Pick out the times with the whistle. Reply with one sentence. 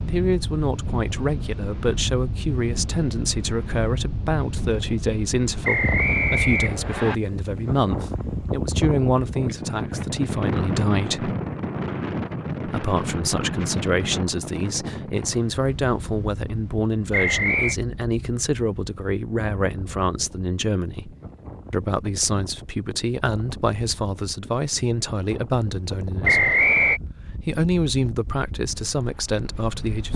The whistle can be heard from 5.6 to 7.2 s, from 17.1 to 17.8 s and from 26.2 to 27.0 s.